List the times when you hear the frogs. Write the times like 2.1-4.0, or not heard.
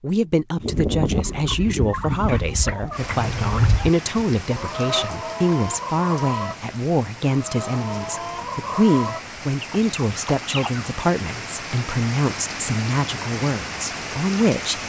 not heard.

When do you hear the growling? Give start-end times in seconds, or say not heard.
3.1-3.9.